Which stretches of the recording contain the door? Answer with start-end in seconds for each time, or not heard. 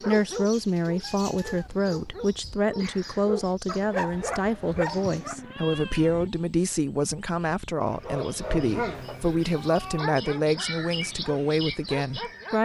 not heard.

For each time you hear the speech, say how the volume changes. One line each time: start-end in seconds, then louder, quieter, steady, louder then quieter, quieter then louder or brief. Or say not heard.
0.1-12.5 steady.